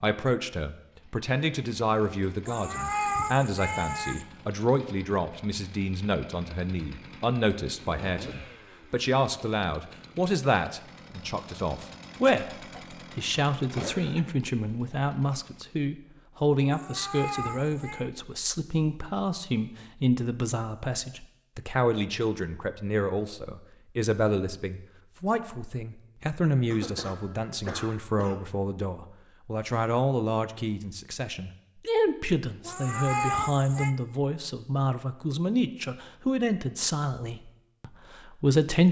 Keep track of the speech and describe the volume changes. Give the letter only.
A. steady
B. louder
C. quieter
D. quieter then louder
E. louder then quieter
A.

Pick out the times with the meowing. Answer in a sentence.
You can hear the meowing from 2.5 to 4.2 s, from 16.7 to 18.1 s and from 32.6 to 34.0 s.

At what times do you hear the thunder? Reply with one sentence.
You can't hear the thunder here.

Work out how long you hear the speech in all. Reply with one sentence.
You can hear the speech for 39 seconds altogether.